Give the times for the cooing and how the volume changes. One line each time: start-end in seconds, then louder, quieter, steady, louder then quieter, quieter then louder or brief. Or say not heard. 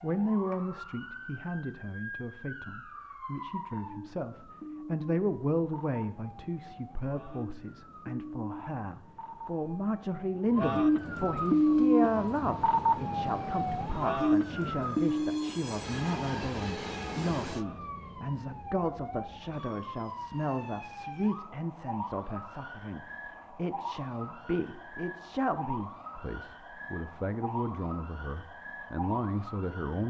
not heard.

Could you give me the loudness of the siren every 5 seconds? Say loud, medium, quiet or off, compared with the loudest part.
quiet, quiet, loud, medium, quiet, quiet.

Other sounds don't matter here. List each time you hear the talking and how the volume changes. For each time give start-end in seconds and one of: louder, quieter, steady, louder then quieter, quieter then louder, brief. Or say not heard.
0.0-30.0 steady.